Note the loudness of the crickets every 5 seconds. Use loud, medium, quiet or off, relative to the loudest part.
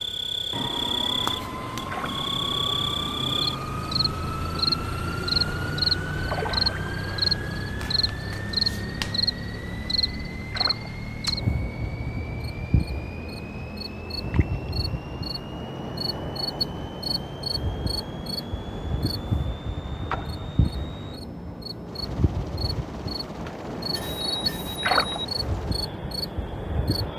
loud, loud, medium, medium, medium, medium.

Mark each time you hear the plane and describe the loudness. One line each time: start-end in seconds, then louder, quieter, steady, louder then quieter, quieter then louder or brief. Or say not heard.
0.0-27.1 quieter.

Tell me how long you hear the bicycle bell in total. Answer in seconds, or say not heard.
2 s.